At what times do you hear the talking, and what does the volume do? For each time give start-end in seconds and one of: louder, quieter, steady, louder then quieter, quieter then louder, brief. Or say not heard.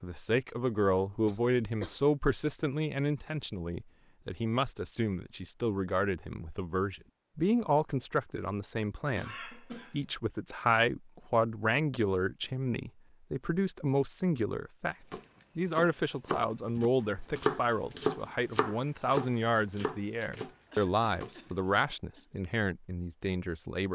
0.0-23.9 steady.